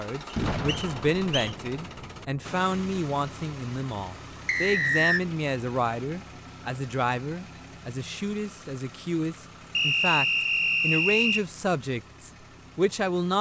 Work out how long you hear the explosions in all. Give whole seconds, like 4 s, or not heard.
2 s.